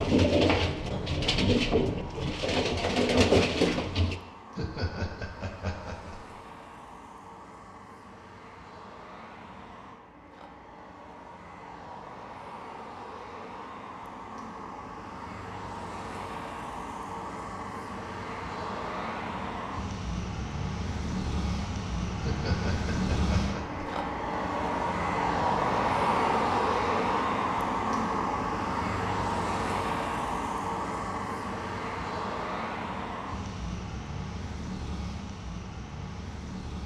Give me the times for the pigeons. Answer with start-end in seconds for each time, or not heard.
0.0-4.2.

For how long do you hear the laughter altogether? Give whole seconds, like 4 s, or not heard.
3 s.